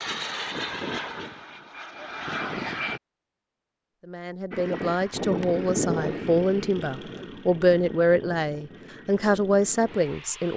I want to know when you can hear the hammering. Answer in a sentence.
The hammering can't be heard in this clip.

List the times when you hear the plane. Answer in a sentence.
The plane can be heard from 0.0 to 3.0 s and from 4.5 to 10.5 s.